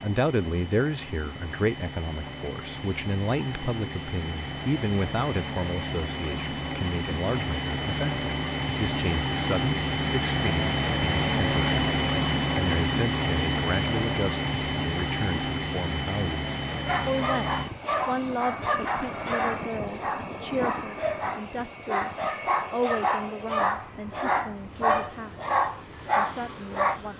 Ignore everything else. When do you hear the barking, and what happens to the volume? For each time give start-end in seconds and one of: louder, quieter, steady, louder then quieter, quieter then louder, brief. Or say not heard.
16.7-27.0 louder.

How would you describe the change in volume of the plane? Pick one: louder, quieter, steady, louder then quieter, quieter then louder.
louder then quieter.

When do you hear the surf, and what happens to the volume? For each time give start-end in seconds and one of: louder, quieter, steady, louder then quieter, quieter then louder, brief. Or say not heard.
not heard.